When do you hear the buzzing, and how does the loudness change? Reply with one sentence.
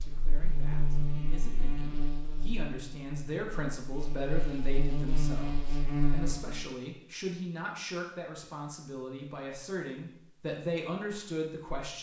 The buzzing can be heard from 0.0 to 6.7 s, getting quieter then louder.